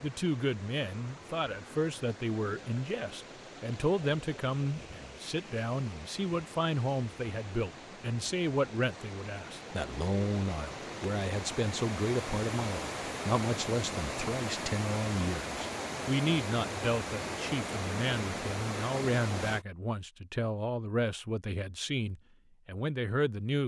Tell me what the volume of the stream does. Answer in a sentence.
The loudness of the stream goes up.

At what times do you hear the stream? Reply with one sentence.
The stream can be heard from 0.0 to 19.6 s.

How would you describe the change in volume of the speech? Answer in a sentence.
The volume of the speech stays about the same.